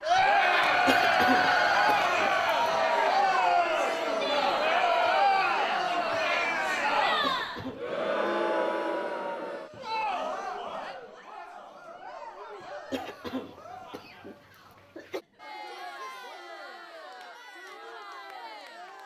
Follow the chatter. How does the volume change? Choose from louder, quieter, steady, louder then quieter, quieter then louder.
quieter.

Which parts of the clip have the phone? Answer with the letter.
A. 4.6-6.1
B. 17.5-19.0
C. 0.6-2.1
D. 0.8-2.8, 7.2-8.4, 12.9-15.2
C.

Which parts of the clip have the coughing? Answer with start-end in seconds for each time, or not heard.
0.8-2.8, 7.2-8.4, 12.9-15.2.